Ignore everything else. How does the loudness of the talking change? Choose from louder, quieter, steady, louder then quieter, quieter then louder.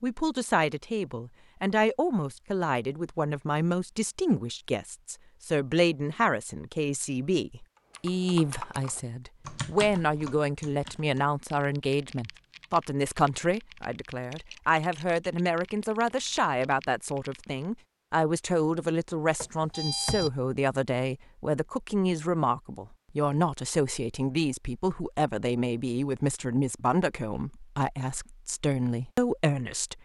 steady.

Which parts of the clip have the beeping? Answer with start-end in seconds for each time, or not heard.
19.4-20.3.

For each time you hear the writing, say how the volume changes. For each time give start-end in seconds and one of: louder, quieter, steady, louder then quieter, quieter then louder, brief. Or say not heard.
not heard.